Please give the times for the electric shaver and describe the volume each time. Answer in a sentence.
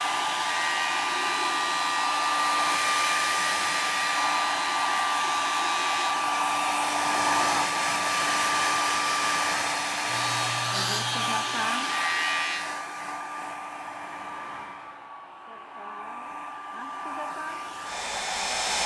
You can hear the electric shaver from 0.0 to 6.2 s, at a steady volume; and briefly from 10.1 to 12.7 s.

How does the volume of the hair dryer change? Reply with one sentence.
The loudness of the hair dryer goes down.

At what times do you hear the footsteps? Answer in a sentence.
You can't hear the footsteps here.